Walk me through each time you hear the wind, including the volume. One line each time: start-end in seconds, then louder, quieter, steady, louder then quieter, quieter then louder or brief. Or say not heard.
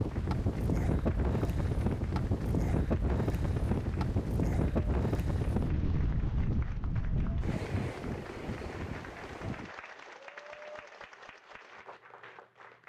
0.0-9.8 quieter.